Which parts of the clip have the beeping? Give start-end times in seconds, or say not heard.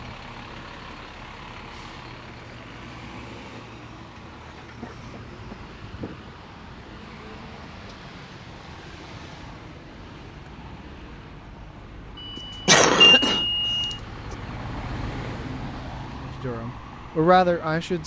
12.2-13.8.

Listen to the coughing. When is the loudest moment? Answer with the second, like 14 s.
13 s.